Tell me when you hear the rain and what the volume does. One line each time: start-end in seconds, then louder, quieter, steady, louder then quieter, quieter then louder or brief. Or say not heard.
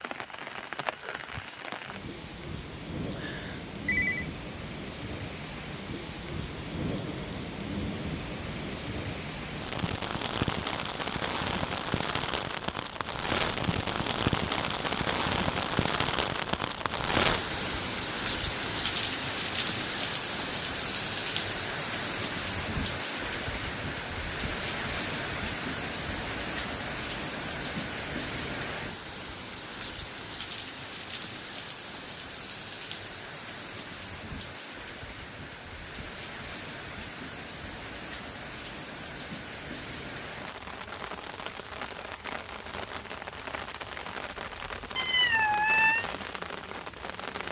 0.0-47.4 louder then quieter.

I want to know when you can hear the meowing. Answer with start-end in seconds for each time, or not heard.
45.0-46.0.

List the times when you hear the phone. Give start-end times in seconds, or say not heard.
3.1-4.3.